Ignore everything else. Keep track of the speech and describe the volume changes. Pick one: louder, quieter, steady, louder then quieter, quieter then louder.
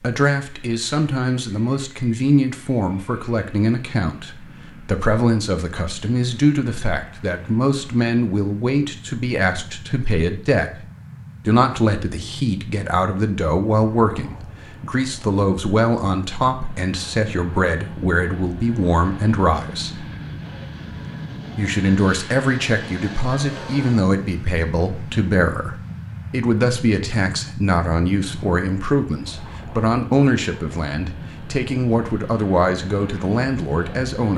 steady.